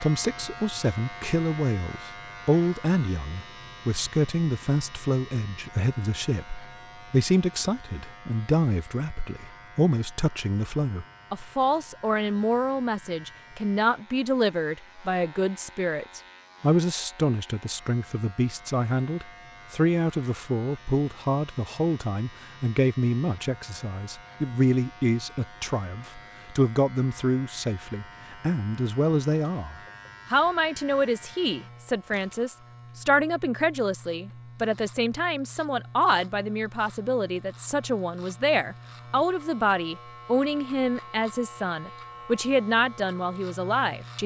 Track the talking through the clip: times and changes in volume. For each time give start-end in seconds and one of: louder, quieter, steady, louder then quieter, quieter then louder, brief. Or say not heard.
0.0-44.2 steady.